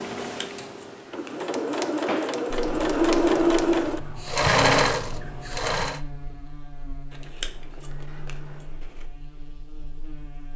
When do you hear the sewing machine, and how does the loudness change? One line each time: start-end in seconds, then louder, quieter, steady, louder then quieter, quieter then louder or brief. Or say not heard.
0.0-6.0 louder.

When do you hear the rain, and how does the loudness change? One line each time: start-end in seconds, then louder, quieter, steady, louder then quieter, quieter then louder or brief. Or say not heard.
not heard.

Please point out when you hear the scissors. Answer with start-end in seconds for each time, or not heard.
0.2-1.4, 7.1-9.1.